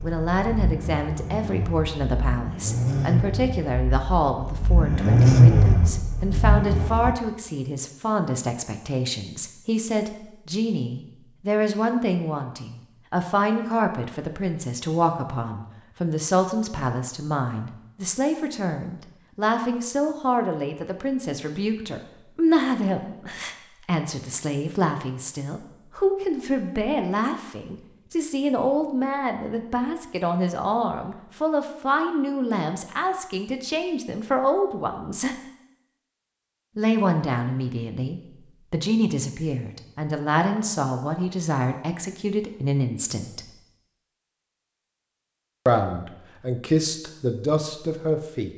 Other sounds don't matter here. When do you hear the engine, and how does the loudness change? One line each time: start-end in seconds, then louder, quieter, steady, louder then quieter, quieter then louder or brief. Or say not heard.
0.0-7.2 louder then quieter.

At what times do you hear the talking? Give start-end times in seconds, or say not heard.
0.0-35.4, 36.8-43.5, 45.6-48.5.